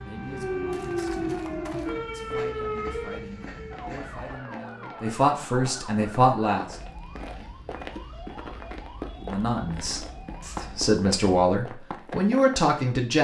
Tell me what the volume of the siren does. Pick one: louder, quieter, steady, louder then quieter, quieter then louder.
quieter.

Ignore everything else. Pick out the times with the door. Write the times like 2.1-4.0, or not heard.
not heard.